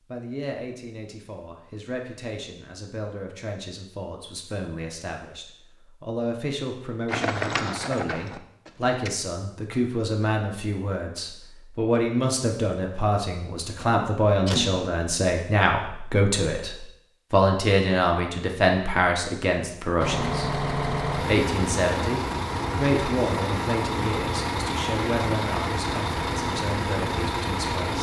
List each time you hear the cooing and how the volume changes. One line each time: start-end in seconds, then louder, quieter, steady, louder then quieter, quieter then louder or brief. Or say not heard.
not heard.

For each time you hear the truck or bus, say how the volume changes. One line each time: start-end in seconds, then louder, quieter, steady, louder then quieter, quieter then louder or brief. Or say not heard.
20.0-27.9 steady.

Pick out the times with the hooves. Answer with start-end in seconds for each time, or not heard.
7.0-9.1.